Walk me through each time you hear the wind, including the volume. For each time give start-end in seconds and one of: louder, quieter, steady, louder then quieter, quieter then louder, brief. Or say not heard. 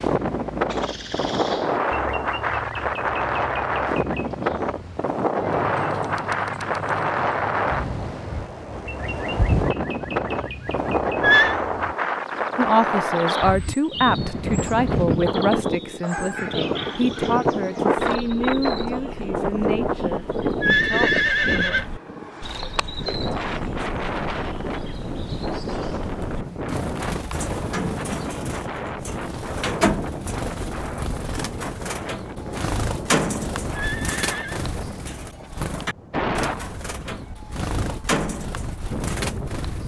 0.0-39.8 quieter.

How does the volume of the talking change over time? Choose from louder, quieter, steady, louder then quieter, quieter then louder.
quieter.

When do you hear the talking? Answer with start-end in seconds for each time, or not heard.
12.6-21.8.